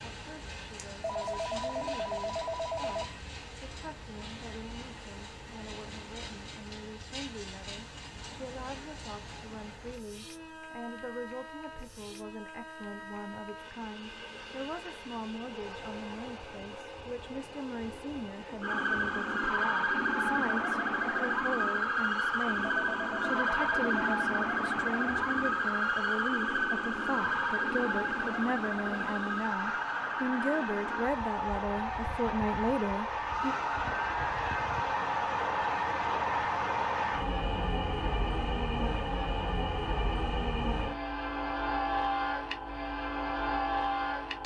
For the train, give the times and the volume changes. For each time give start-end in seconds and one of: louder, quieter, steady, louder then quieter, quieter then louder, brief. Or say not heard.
0.0-44.4 louder.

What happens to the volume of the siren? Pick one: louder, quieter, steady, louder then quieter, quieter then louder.
quieter.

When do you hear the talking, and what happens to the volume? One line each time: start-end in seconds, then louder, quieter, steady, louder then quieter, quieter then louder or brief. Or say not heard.
0.0-33.5 louder.